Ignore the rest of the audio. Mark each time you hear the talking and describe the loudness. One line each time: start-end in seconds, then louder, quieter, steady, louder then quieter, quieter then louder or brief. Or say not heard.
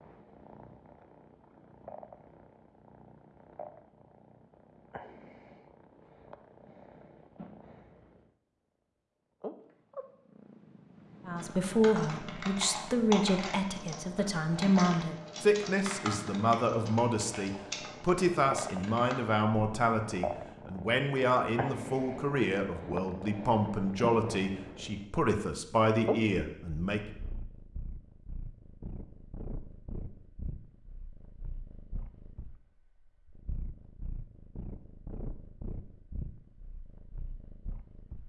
11.2-27.0 steady.